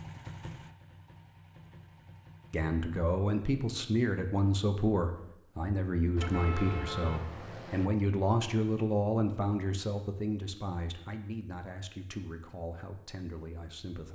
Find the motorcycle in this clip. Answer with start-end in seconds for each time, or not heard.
0.0-2.7.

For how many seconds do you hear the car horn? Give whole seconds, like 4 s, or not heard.
2 s.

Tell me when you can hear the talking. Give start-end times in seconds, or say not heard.
2.5-14.0.